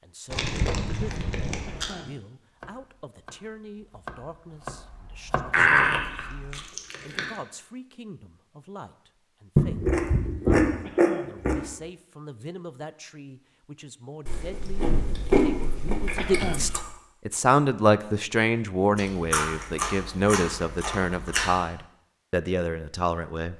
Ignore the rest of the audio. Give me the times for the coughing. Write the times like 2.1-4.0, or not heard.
1.6-2.2, 10.8-11.4, 16.1-16.8.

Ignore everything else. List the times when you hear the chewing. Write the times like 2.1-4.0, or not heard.
0.3-1.9, 5.5-7.3, 9.6-11.6, 14.2-16.8, 18.9-21.6.